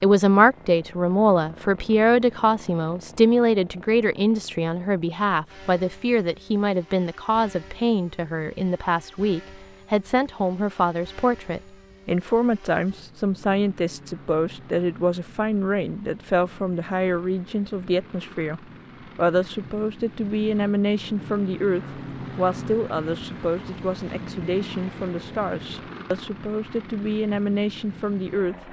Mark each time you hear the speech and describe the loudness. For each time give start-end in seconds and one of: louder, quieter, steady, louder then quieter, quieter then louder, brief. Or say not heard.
0.0-28.6 quieter.